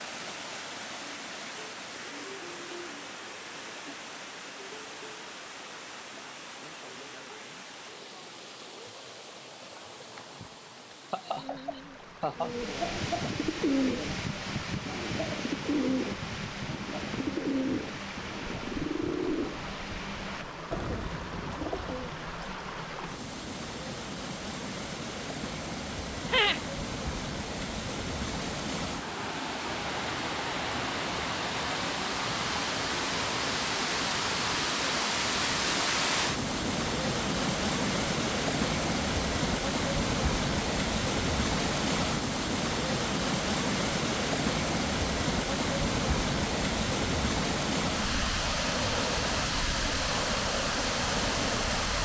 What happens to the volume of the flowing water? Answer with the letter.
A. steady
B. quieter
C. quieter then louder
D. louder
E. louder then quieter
D.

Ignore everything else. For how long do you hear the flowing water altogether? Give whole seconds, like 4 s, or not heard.
52 s.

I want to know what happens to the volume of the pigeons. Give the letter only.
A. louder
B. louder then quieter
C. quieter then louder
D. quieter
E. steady
D.